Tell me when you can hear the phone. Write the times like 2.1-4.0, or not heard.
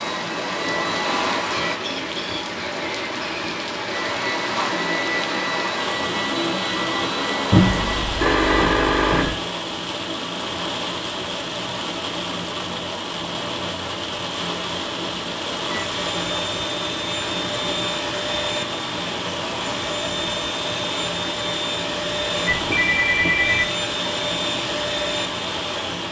7.5-9.3, 22.5-23.6.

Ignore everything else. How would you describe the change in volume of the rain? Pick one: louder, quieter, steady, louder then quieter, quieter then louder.
steady.